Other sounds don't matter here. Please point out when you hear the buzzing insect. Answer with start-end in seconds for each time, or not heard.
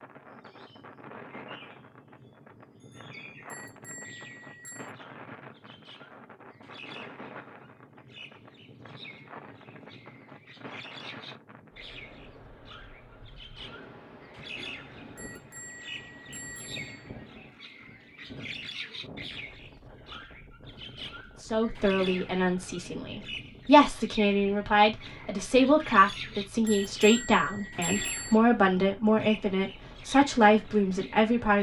not heard.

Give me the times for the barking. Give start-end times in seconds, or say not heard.
not heard.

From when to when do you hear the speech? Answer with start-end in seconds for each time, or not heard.
21.4-31.5.